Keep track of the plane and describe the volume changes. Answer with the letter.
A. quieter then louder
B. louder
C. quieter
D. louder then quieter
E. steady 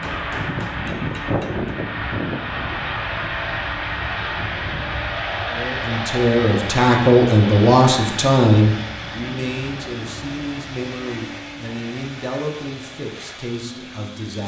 C.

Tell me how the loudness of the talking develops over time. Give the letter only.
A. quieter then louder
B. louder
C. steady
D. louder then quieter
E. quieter
E.